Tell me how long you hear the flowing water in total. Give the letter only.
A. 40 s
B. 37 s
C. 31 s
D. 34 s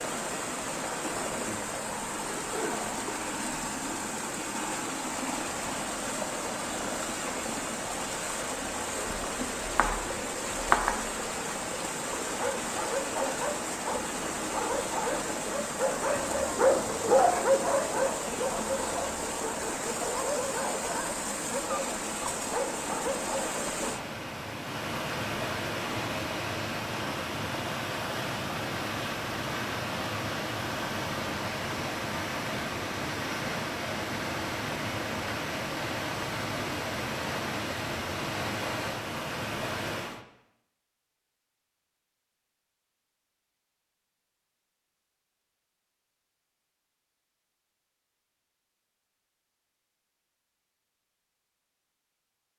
A.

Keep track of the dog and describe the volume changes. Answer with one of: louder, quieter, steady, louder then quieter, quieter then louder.
louder then quieter.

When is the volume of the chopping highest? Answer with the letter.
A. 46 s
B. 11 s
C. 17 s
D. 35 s
B.